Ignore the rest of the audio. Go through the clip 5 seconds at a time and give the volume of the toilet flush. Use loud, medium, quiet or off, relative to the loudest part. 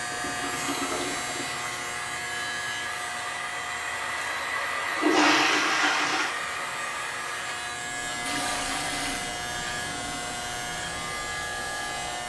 medium, loud, off.